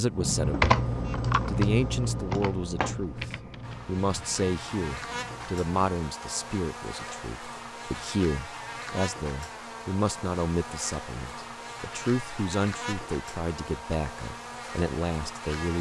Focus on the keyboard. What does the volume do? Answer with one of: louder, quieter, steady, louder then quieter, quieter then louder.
quieter.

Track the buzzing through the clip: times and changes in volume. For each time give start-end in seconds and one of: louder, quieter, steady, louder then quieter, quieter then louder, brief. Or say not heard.
3.6-15.7 steady.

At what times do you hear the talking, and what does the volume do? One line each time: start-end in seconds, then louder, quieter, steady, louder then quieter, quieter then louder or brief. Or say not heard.
0.0-0.8 brief
1.4-15.7 steady.